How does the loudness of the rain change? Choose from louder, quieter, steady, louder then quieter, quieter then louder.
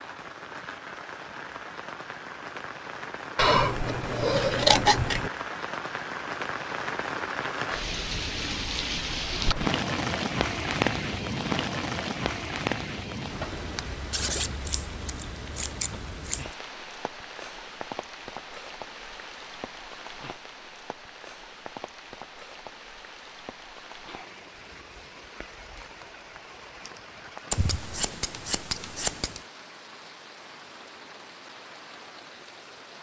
louder then quieter.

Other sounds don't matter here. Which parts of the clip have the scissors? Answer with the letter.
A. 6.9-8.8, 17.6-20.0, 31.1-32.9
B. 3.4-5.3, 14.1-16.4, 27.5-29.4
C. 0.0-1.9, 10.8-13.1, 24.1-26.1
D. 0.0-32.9
B.